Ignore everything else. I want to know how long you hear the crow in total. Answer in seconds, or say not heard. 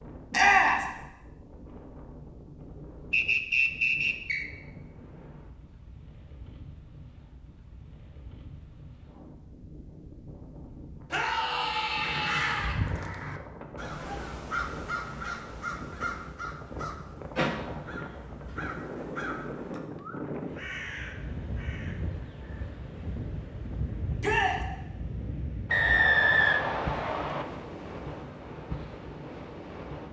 11 s.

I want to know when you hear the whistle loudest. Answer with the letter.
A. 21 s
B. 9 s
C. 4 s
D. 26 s
D.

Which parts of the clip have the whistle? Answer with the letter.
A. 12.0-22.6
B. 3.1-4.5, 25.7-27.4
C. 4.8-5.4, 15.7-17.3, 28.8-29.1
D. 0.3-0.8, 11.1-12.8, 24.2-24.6
B.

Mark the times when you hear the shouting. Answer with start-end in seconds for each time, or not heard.
0.3-0.8, 11.1-12.8, 24.2-24.6.